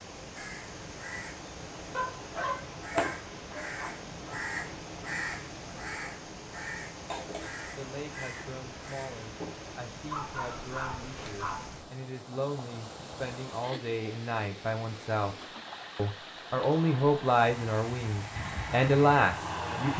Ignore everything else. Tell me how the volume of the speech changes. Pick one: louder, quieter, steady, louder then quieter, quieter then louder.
louder.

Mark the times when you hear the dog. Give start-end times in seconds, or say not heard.
1.9-4.0, 10.1-11.7.